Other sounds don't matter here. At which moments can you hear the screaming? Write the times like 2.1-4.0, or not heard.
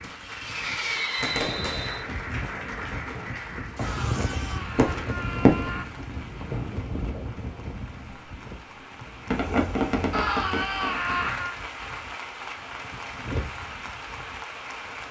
3.8-5.8, 10.1-11.6.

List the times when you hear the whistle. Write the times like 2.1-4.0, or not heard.
0.9-2.0.